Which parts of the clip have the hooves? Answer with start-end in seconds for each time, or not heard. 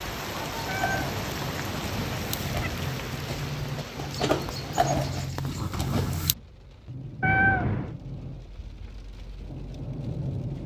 0.3-6.3.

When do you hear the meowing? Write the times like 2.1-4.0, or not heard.
0.7-2.7, 7.2-8.0.